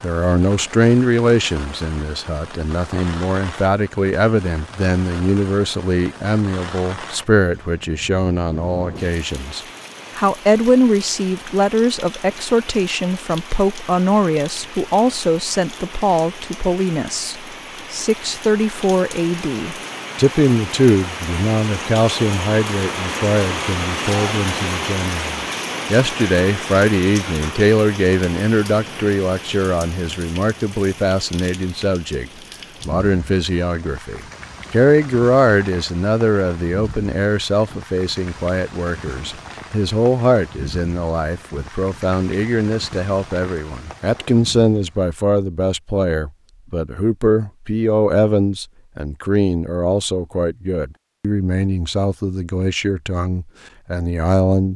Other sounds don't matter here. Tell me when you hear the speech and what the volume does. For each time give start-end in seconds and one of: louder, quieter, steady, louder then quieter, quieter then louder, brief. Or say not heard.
0.0-54.7 steady.